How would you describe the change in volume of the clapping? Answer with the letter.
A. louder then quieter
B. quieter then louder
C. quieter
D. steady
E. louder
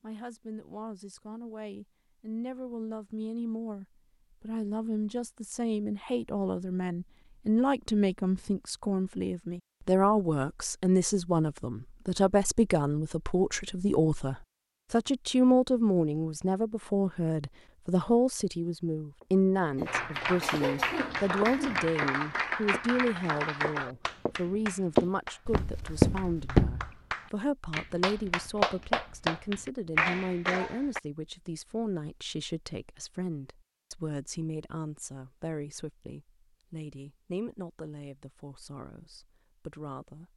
B.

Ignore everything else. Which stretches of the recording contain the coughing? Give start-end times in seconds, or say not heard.
19.8-21.9.